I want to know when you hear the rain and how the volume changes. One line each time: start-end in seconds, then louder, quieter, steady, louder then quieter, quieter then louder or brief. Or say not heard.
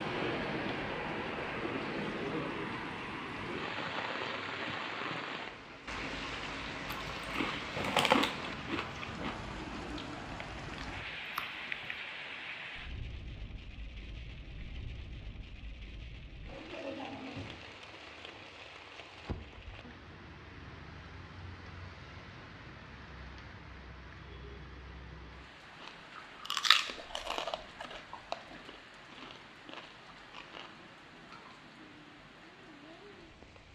0.0-33.7 quieter.